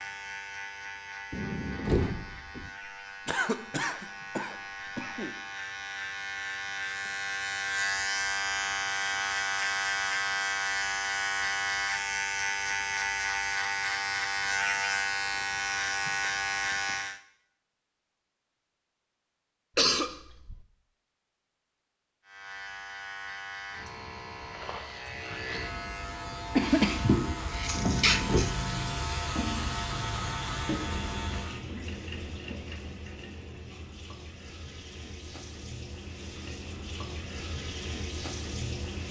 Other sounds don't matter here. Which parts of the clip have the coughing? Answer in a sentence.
The coughing can be heard from 3.2 to 5.3 s, from 19.8 to 20.6 s and from 26.6 to 28.5 s.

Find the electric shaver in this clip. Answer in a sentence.
The electric shaver can be heard from 0.0 to 17.2 s and from 22.2 to 31.6 s.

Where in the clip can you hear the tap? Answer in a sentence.
You can hear the tap from 26.6 to 39.0 s.